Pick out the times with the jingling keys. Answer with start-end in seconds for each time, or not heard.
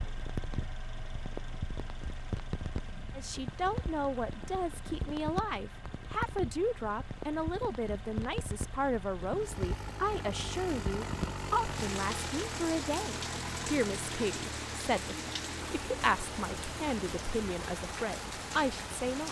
not heard.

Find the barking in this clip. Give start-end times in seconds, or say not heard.
not heard.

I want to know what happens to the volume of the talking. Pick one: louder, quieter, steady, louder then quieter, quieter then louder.
steady.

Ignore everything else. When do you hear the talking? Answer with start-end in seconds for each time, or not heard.
3.1-19.2.